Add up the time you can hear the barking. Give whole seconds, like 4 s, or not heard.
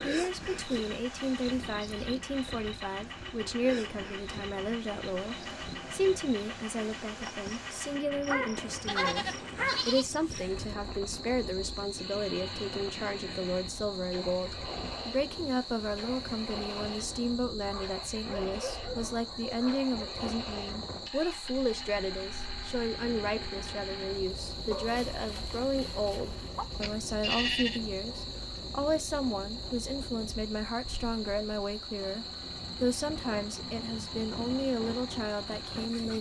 6 s.